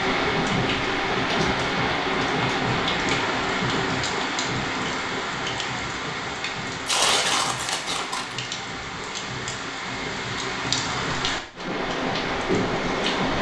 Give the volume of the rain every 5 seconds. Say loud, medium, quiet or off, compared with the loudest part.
loud, medium, loud.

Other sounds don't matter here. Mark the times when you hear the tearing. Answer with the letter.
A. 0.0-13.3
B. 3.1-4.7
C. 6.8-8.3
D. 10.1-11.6
C.